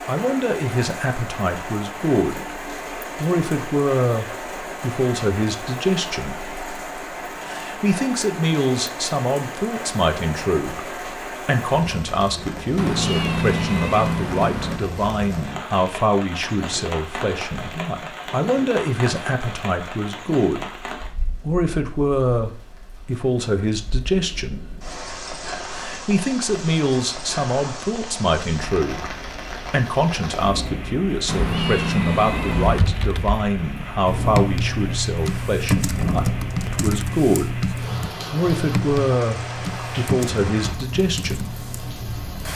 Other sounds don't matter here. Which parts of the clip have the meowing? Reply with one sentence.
You can hear the meowing from 12.8 to 14.8 s and from 31.2 to 32.9 s.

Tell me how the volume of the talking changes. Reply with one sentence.
The volume of the talking stays about the same.